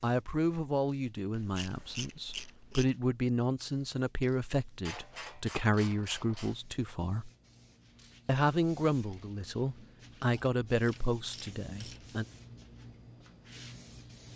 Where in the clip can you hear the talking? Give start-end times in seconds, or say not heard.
0.0-7.3, 8.2-12.2.